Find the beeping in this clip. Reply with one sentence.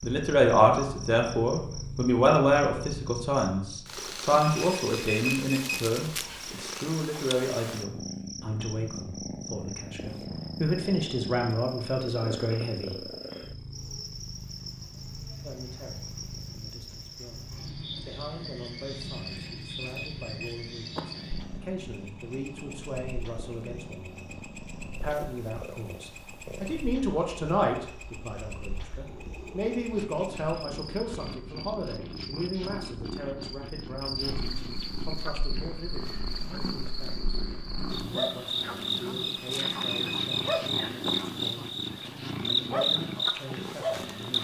You can hear the beeping from 4.3 to 5.8 s, from 19.1 to 21.0 s and from 39.2 to 41.1 s.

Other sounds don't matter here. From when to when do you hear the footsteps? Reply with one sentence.
You can't hear the footsteps here.